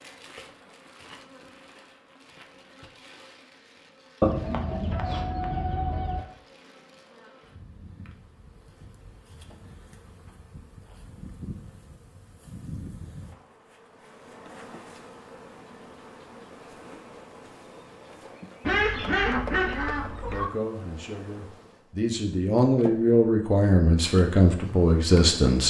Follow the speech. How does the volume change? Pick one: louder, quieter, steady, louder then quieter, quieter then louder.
louder.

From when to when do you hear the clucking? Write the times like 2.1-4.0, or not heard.
4.2-6.2, 18.6-20.4.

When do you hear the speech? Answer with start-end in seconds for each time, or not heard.
20.3-25.6.